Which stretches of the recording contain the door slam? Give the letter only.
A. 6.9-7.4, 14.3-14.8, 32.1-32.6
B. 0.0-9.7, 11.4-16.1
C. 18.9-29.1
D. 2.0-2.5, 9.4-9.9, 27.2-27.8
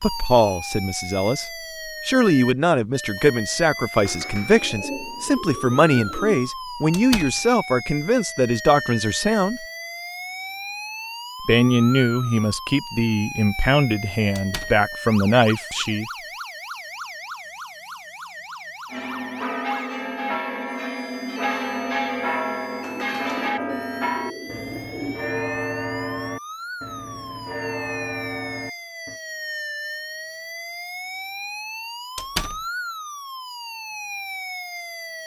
A.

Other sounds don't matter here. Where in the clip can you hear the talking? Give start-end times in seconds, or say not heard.
0.0-9.7, 11.4-16.1.